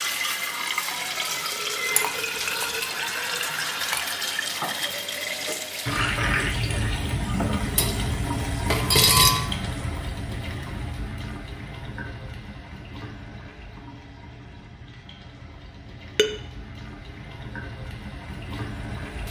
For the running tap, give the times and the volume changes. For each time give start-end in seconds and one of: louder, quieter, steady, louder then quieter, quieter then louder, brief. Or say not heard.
0.0-19.2 quieter.